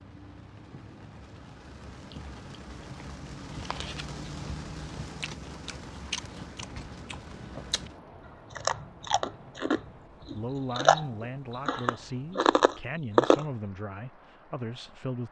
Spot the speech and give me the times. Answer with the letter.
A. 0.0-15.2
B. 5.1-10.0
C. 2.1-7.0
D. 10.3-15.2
D.